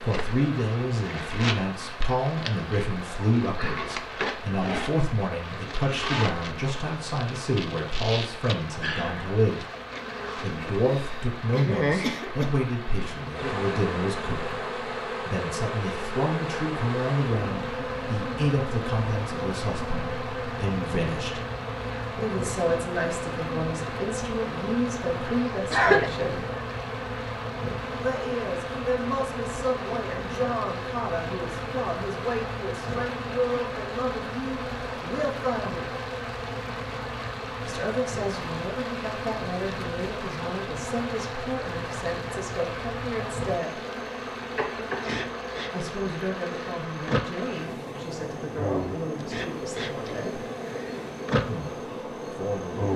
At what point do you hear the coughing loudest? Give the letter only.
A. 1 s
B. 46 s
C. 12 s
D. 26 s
D.